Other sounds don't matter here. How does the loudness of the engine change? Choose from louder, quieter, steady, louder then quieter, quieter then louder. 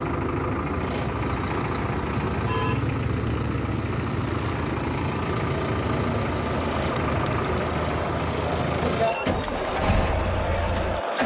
steady.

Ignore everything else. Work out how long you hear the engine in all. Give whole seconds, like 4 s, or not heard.
11 s.